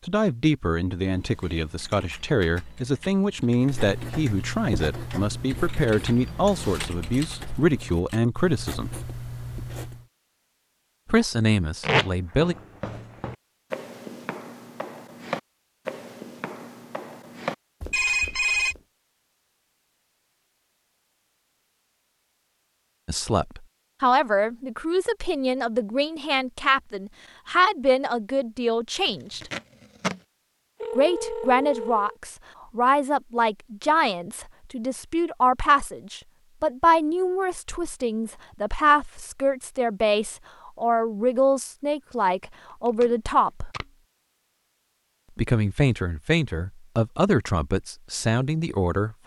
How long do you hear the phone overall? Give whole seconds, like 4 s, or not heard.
2 s.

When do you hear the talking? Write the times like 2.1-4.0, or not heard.
0.1-8.9, 11.1-12.6, 23.1-29.5, 30.9-43.7, 45.4-49.2.